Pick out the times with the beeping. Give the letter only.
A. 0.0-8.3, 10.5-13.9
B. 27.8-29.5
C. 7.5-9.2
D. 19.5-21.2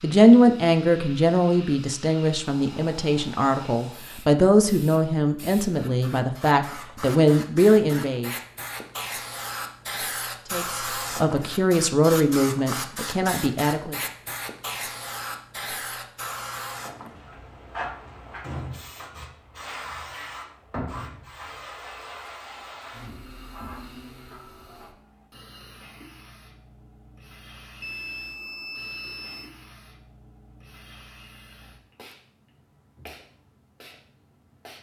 B.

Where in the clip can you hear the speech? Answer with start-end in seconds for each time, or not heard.
0.0-8.3, 10.5-13.9.